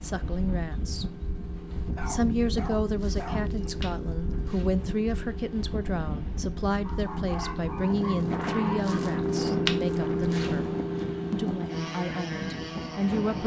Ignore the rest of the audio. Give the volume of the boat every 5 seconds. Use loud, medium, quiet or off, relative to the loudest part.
medium, loud, loud.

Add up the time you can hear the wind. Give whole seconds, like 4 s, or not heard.
13 s.